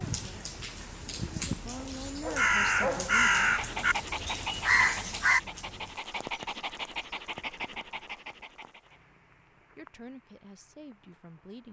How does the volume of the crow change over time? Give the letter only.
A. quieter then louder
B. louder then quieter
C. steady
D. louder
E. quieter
D.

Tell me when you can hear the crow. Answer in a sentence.
The crow can be heard from 0.0 to 5.4 s.